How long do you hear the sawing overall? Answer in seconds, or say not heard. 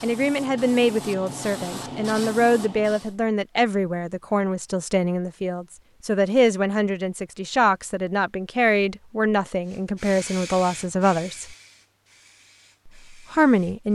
not heard.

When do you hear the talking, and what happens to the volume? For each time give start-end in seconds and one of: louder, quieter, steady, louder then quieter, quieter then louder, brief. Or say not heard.
0.0-11.6 steady
13.1-13.8 brief.